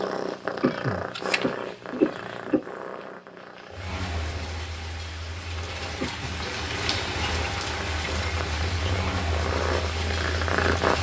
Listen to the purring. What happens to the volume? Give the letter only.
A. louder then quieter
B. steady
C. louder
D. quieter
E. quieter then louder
E.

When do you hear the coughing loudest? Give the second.
2 s.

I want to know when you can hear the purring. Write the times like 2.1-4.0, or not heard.
0.0-10.9.